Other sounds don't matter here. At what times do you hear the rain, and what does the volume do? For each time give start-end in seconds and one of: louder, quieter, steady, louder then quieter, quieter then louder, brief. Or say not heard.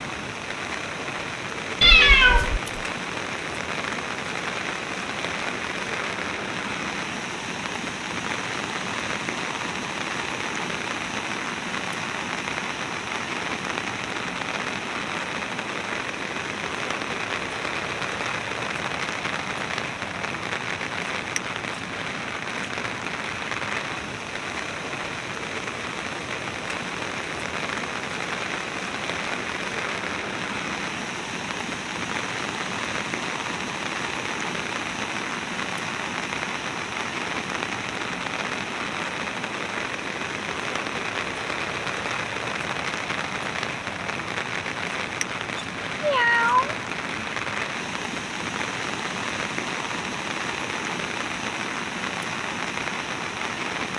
0.0-53.9 steady.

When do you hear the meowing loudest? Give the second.
2 s.